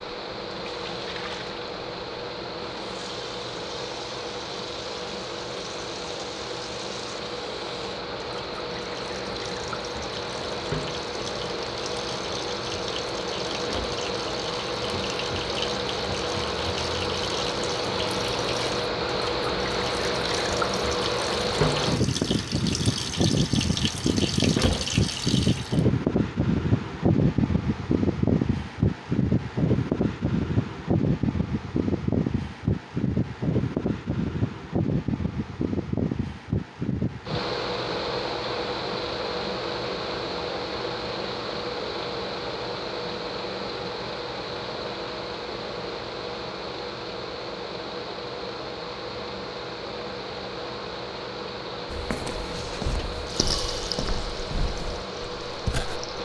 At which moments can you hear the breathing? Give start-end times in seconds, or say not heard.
not heard.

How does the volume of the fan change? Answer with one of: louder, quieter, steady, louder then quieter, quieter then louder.
louder then quieter.